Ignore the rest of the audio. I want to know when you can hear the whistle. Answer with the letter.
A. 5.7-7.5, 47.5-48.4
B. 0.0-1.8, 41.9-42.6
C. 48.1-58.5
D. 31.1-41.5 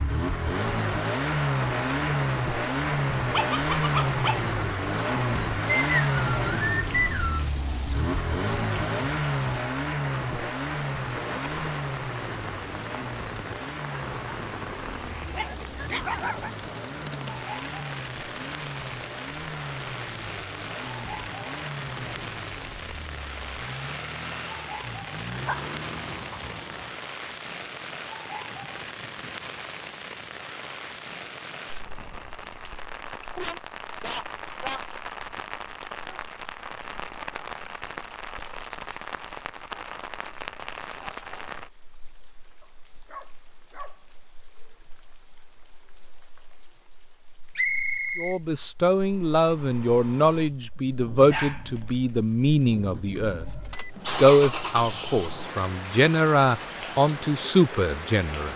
A.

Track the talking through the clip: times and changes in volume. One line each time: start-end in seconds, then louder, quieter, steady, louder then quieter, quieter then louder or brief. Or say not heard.
48.1-58.5 steady.